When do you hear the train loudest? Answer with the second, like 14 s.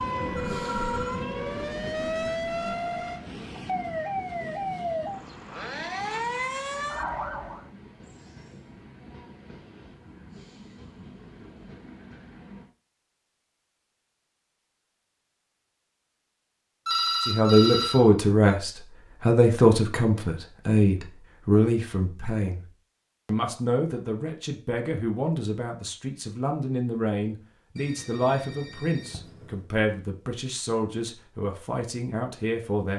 1 s.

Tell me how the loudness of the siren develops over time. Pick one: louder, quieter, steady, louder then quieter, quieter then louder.
steady.